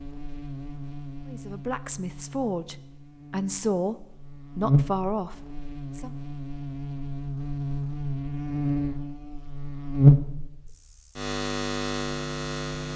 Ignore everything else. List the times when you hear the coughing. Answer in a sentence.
The coughing can't be heard in this clip.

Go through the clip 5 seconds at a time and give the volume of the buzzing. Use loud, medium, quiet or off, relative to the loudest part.
medium, medium, loud.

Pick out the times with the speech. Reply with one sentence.
You can hear the speech from 1.2 to 6.2 s.